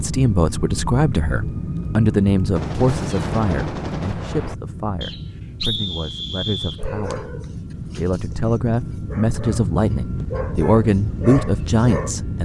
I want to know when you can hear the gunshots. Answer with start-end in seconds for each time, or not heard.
2.5-4.5.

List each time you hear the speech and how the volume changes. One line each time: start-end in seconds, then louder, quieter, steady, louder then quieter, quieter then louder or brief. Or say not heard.
0.0-12.4 quieter then louder.